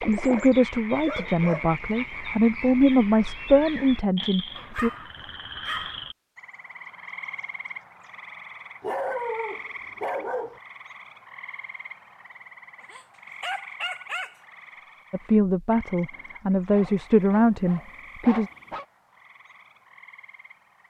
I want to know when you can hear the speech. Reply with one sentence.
You can hear the speech from 0.0 to 4.9 s and from 15.1 to 18.5 s.